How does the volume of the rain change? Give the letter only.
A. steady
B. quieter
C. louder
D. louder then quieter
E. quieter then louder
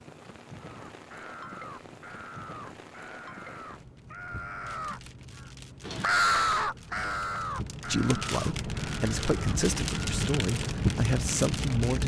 C.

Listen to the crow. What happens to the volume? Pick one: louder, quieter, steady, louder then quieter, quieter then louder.
louder then quieter.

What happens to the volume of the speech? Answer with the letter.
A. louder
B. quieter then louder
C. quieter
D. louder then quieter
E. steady
A.